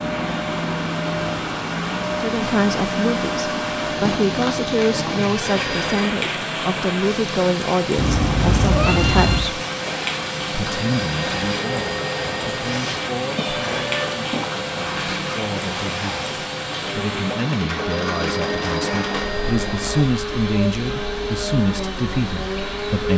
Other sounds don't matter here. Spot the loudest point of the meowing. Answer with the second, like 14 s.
9 s.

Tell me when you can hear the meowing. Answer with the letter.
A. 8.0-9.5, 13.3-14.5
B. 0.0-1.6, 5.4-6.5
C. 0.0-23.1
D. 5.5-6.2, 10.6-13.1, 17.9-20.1
A.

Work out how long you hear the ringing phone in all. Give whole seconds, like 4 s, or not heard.
5 s.